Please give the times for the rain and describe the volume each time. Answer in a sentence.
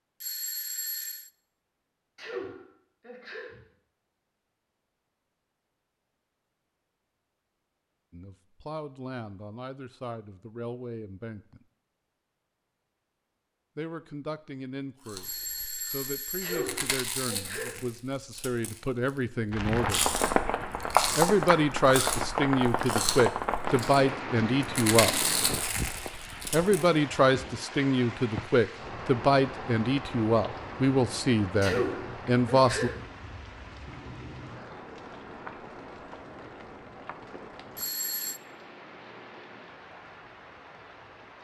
You can hear the rain from 19.5 to 41.3 s, getting quieter.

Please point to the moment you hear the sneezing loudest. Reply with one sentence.
The loudest moment of the sneezing is at 32 seconds.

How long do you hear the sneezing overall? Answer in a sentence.
The sneezing can be heard for 4 seconds in total.